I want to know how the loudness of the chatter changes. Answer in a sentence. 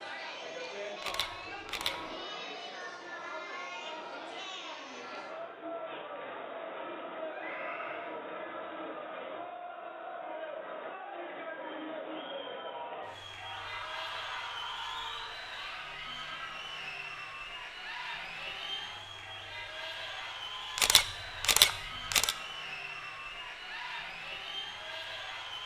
The volume of the chatter stays about the same.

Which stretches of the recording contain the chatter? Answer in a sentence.
The chatter can be heard from 0.0 to 25.6 s.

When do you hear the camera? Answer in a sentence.
The camera can be heard from 1.0 to 1.9 s and from 20.8 to 22.4 s.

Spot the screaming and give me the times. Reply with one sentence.
The screaming can be heard from 7.2 to 8.2 s and from 13.3 to 15.3 s.